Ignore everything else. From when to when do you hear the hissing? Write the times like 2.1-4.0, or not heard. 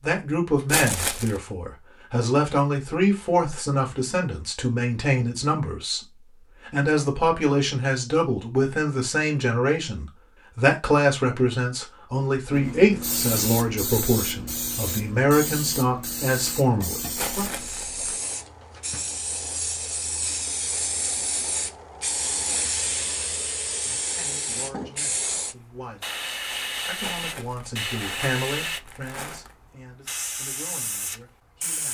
12.5-31.8.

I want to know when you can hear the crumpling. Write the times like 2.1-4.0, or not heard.
0.7-1.4, 17.1-18.2, 27.0-29.6.